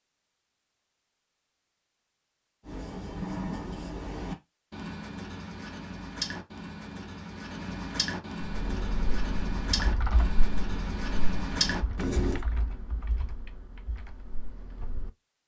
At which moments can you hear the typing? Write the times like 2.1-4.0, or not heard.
8.4-15.1.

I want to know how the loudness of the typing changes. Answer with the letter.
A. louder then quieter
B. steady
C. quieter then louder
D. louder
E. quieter
E.